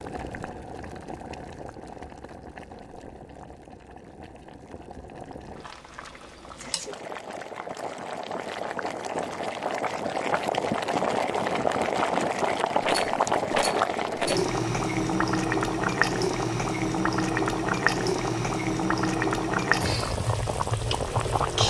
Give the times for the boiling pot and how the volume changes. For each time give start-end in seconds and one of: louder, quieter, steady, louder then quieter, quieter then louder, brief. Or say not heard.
0.0-21.6 louder.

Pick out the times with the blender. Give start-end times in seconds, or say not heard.
not heard.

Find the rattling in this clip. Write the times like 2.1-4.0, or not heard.
12.8-14.4.